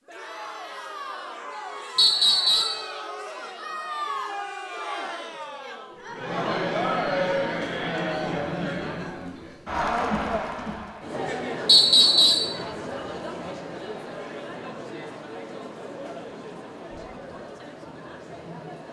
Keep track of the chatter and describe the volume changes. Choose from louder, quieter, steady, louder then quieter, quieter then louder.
louder then quieter.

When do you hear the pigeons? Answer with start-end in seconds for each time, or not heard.
not heard.